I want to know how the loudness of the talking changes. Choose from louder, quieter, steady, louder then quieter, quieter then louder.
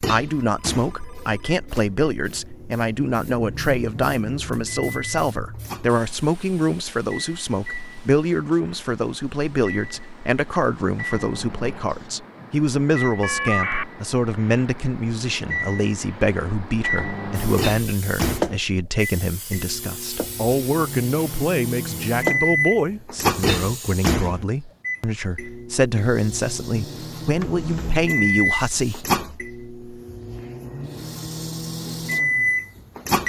steady.